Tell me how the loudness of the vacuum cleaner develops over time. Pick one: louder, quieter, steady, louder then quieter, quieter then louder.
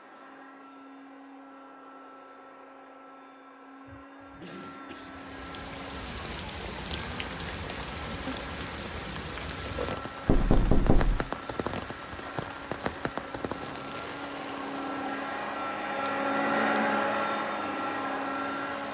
louder.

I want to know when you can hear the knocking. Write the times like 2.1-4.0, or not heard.
10.2-11.3.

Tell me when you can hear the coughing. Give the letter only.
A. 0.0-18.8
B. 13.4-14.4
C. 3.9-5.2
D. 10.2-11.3
C.